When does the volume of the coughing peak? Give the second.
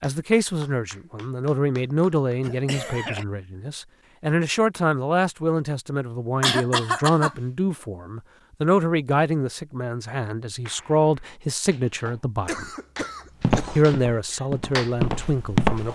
7 s.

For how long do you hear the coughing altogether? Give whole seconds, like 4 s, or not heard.
3 s.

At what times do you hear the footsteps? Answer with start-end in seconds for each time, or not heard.
13.4-15.8.